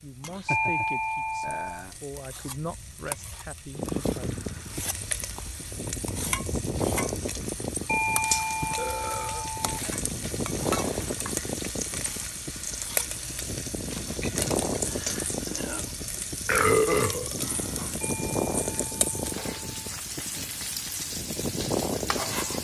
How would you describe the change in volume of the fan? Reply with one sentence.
The volume of the fan stays about the same.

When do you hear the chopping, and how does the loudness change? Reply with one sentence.
The chopping can't be heard in this clip.